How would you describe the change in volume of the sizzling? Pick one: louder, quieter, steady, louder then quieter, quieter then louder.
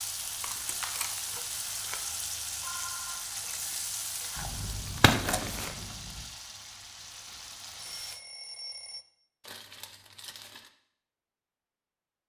quieter.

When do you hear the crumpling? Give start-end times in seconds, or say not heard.
0.2-2.0, 5.1-5.8, 9.4-10.7.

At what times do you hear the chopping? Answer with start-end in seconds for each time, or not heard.
4.3-6.2.